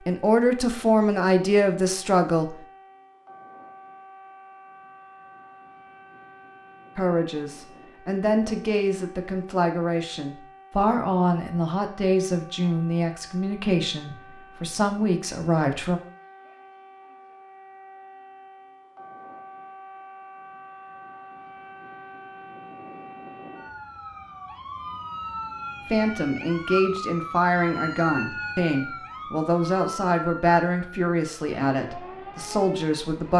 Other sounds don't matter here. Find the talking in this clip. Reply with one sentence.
The talking can be heard from 0.1 to 2.5 s, from 7.0 to 16.0 s and from 25.9 to 33.3 s.